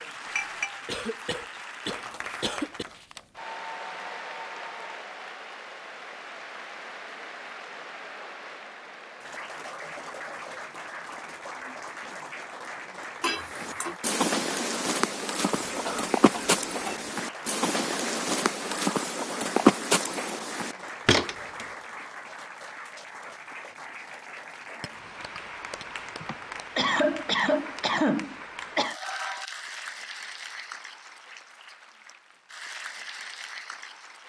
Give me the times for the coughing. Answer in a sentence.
The coughing can be heard from 0.8 to 2.9 s, from 15.7 to 17.1 s and from 26.2 to 28.9 s.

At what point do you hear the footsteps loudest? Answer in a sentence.
The volume of the footsteps peaks at 20 seconds.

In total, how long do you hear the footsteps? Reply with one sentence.
The footsteps can be heard for 8 seconds in total.